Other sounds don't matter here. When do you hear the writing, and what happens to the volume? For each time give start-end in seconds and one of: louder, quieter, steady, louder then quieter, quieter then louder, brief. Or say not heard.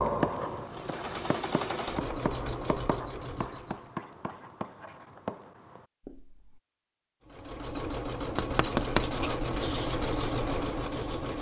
0.0-6.6 steady
8.3-11.3 brief.